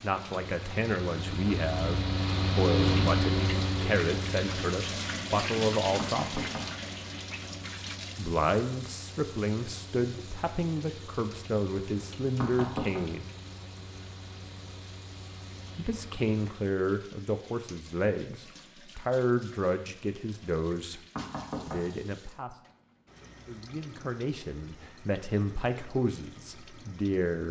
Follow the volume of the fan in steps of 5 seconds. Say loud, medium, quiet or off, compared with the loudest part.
loud, quiet, quiet, quiet, off, off.